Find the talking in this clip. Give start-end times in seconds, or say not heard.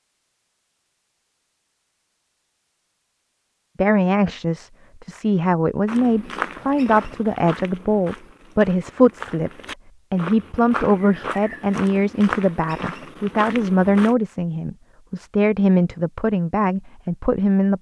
3.8-9.5, 10.1-17.7.